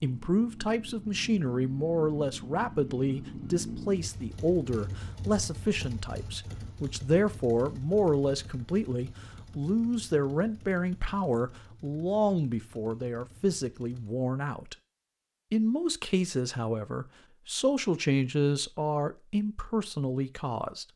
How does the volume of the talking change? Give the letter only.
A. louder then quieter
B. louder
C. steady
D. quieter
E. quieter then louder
C.